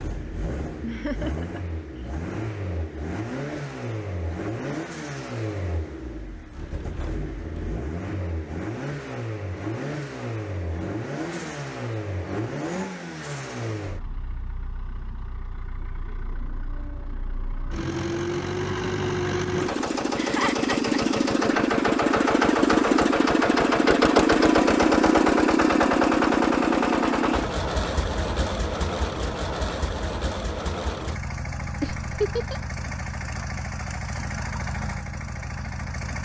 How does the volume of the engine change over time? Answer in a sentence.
The volume of the engine goes up, then down.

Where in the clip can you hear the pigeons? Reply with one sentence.
The pigeons can't be heard in this clip.